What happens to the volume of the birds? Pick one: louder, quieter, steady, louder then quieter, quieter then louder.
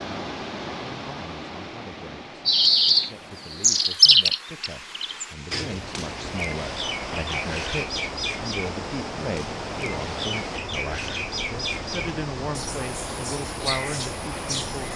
quieter.